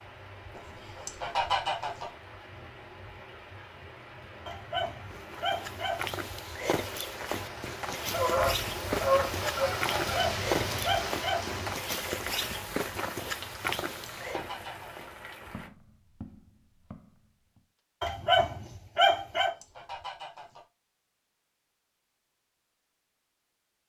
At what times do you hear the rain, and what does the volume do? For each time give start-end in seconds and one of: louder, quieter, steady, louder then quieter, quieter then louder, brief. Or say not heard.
0.0-15.7 louder then quieter.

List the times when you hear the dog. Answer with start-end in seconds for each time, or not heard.
4.5-6.0, 10.1-11.5, 18.0-19.5.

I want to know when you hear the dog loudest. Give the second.
19 s.